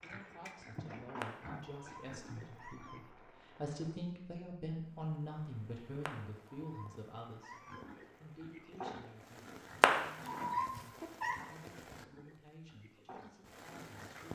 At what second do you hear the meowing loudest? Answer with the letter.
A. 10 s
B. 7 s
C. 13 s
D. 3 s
A.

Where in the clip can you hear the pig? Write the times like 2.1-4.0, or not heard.
0.0-3.0, 7.7-14.2.